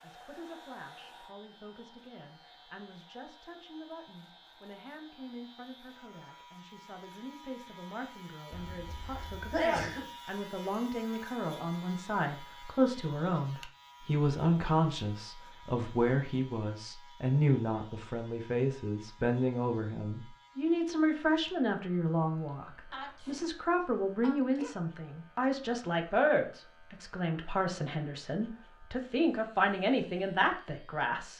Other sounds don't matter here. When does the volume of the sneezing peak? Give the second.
10 s.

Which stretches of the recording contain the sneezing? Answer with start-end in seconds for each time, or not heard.
8.5-10.1, 22.9-24.8.